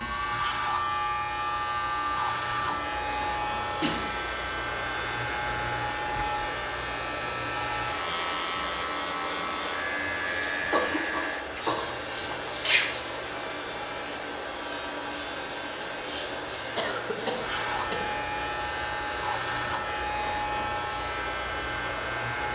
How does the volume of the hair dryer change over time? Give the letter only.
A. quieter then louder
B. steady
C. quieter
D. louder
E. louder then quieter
B.